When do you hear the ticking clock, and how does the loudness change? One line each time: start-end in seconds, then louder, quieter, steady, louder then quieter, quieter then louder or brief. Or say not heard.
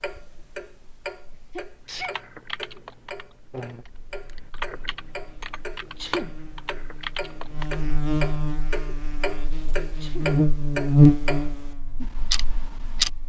0.0-13.1 louder.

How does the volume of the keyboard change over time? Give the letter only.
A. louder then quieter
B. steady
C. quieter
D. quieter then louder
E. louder
D.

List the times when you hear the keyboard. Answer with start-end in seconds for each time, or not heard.
2.0-7.8.